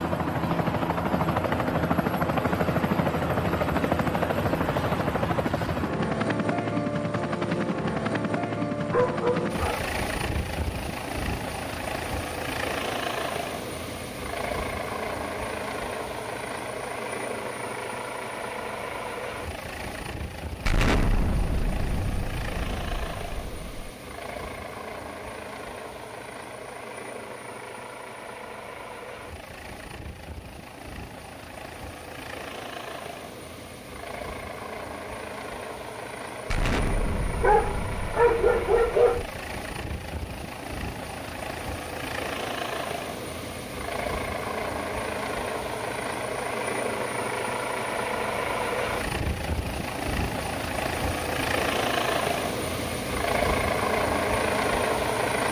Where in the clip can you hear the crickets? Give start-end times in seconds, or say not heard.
not heard.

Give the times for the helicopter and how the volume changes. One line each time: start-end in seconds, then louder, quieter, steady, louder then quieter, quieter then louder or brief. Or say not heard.
0.0-55.4 quieter then louder.